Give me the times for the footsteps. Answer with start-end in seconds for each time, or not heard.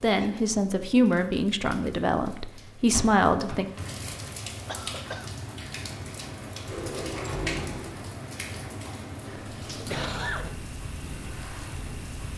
not heard.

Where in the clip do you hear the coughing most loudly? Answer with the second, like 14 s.
10 s.